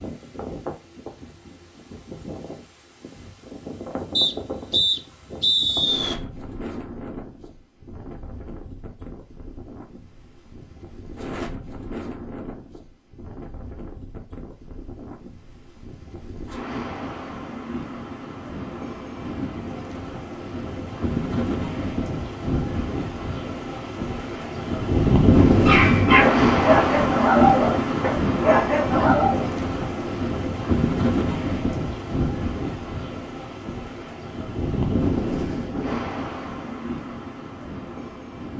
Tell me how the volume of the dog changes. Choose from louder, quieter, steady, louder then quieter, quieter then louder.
quieter then louder.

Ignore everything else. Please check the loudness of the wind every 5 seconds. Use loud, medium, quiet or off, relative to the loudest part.
quiet, quiet, quiet, quiet, medium, loud, medium, medium.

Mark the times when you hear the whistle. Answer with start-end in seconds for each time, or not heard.
4.2-6.2.